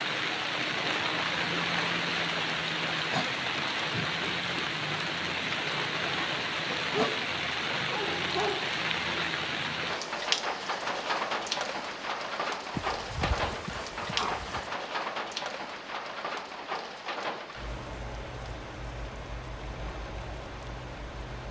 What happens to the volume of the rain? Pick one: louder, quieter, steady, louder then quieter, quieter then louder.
quieter.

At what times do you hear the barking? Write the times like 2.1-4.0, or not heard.
6.8-8.7, 12.8-14.8.